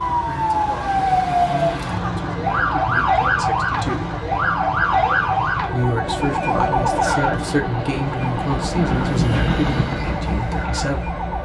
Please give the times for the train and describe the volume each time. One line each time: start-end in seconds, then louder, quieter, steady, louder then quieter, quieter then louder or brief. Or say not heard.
0.0-11.4 louder.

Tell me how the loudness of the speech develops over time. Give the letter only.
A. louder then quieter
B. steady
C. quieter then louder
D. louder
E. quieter
D.